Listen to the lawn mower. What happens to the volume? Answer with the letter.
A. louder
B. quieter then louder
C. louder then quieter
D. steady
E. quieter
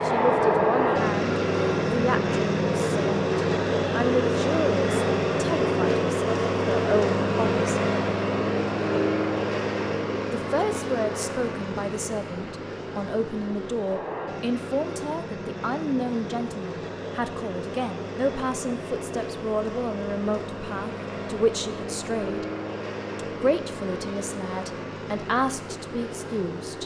E.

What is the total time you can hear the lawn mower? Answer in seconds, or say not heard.
27 s.